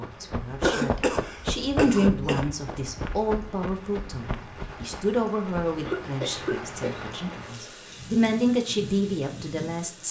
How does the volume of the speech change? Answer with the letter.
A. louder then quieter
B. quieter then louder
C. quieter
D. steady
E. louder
B.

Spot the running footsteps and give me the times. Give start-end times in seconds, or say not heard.
0.0-6.0.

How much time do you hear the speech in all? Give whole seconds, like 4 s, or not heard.
10 s.